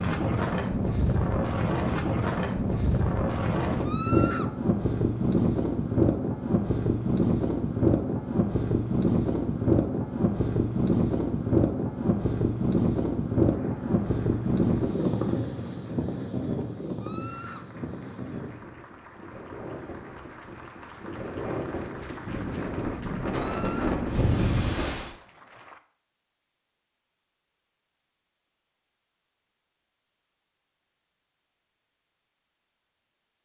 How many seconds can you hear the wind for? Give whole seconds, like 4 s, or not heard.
25 s.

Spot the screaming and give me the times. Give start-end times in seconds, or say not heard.
3.8-4.5, 17.0-17.7, 23.3-24.0.